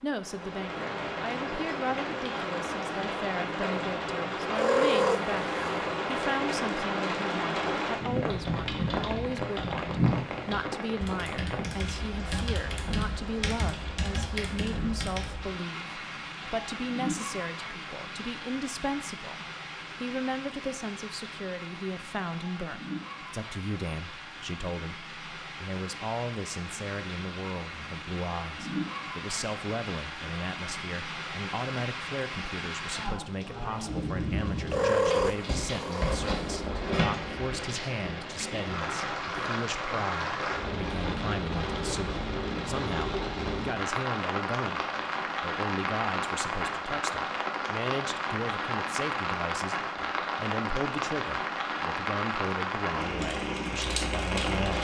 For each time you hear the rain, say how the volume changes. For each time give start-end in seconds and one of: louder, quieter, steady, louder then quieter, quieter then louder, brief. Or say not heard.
0.1-54.7 quieter then louder.